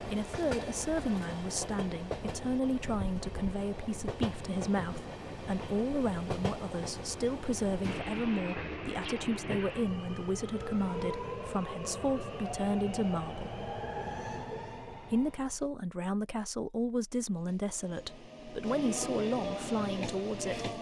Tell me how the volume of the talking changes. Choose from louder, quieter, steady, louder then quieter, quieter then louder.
steady.